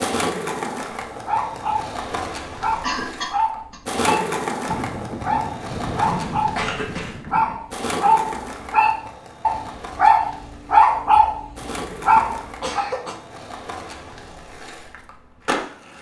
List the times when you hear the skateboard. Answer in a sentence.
The skateboard can be heard from 0.0 to 15.9 s.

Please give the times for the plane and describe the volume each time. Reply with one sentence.
You can't hear the plane here.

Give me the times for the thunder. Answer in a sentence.
You can hear the thunder from 4.7 to 7.7 s.